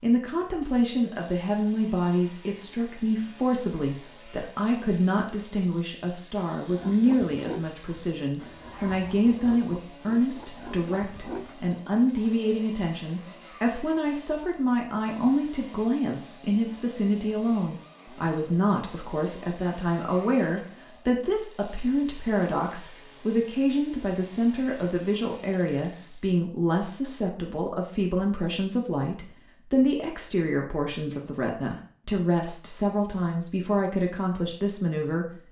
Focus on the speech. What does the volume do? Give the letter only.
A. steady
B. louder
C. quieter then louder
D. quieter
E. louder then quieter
A.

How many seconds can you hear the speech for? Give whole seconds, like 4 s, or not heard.
35 s.